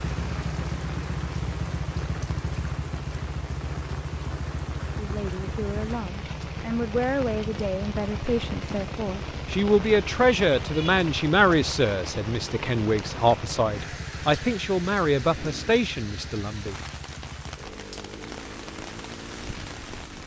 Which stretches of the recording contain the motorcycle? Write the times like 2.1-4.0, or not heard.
0.0-20.2.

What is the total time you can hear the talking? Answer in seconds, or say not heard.
12 s.